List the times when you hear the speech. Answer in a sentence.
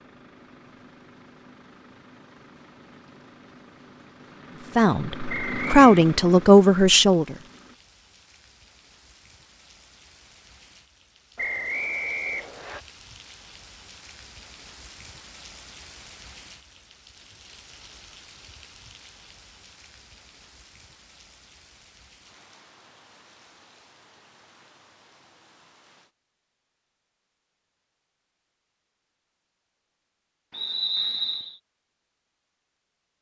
You can hear the speech from 4.8 to 7.3 s.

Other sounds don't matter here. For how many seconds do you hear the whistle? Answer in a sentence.
You can hear the whistle for 3 seconds altogether.